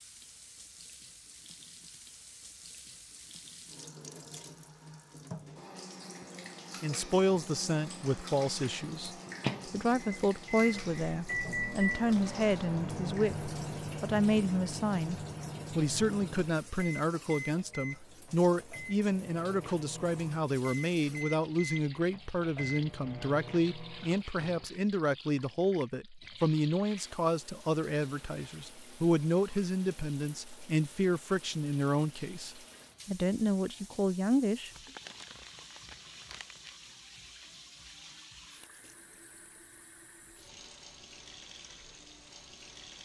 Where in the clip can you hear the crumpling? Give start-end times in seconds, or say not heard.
34.7-36.8.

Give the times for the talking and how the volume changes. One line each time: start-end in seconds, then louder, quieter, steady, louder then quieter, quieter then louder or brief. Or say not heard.
6.8-34.7 steady.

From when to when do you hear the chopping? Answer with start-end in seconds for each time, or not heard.
not heard.